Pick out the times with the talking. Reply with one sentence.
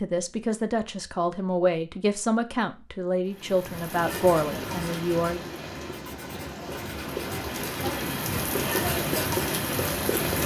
You can hear the talking from 0.0 to 5.5 s.